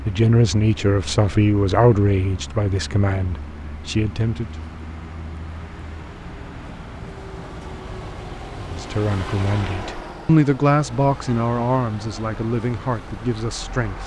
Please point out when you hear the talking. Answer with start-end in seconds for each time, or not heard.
0.0-4.5, 8.6-14.0.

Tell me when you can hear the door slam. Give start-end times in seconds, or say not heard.
not heard.